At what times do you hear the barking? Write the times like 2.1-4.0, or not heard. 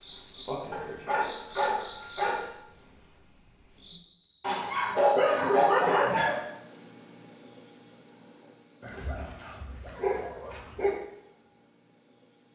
0.7-2.5, 4.4-6.4, 8.8-10.9.